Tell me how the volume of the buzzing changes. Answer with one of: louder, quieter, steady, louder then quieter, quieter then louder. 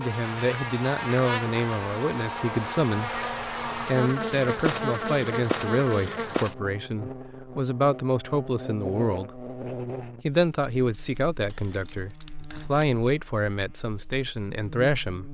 quieter.